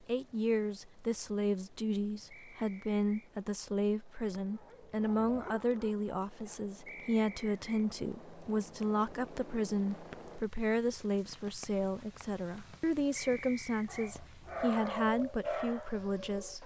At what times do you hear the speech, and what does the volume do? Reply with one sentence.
The speech can be heard from 0.0 to 16.6 s, at a steady volume.